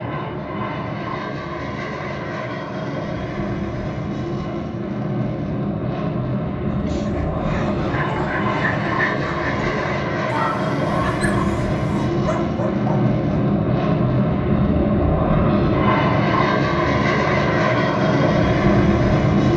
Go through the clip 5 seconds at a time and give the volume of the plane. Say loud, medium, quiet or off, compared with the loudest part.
medium, medium, loud, loud.